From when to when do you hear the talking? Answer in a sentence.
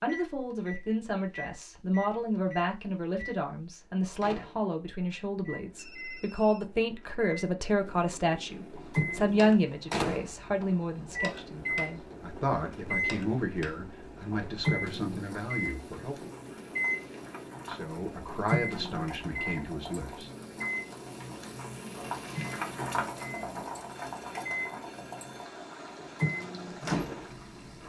The talking can be heard from 0.0 to 16.3 s and from 17.6 to 20.3 s.